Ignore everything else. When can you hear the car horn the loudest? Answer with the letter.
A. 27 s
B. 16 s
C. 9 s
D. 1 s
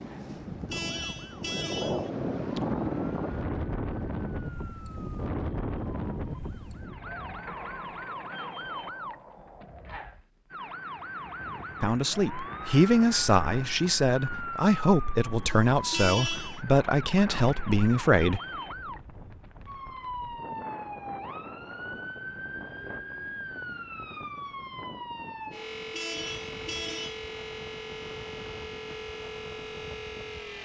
B.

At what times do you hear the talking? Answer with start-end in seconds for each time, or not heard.
11.8-18.4.